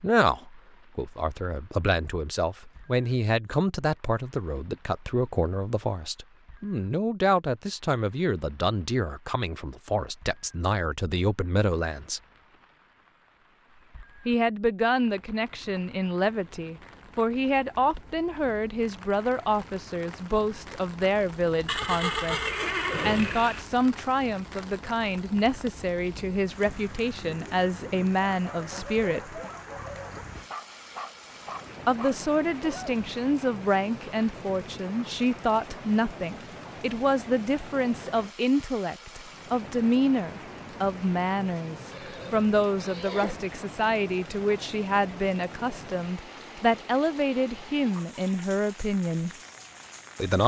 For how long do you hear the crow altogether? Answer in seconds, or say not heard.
not heard.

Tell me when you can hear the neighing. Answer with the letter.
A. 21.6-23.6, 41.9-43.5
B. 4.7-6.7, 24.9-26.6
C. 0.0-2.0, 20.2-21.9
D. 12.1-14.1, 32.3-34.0
A.